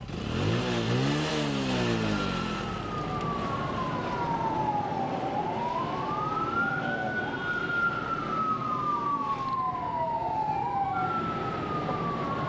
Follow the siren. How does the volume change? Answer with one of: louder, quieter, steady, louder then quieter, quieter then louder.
steady.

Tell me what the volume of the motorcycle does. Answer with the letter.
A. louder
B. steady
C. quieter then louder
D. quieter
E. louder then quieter
D.